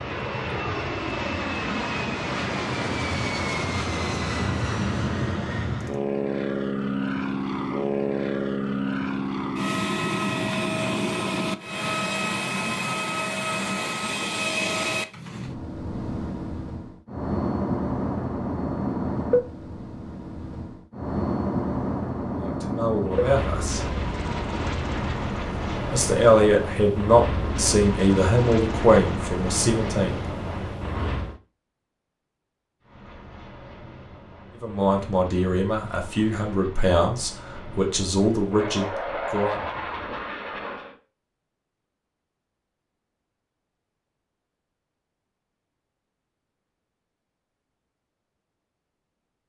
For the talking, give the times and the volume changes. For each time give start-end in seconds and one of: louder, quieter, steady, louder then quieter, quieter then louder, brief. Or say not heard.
22.4-23.9 brief
25.9-30.1 quieter
34.6-39.6 steady.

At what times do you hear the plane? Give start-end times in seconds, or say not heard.
0.0-31.4, 32.8-41.0.